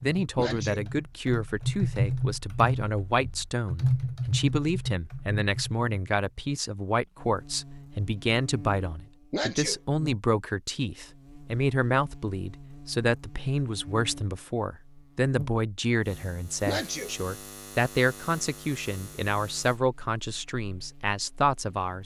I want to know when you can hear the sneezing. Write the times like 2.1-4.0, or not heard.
0.3-0.8, 9.3-9.8, 16.6-17.1.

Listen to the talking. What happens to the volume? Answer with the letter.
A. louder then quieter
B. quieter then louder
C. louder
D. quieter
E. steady
E.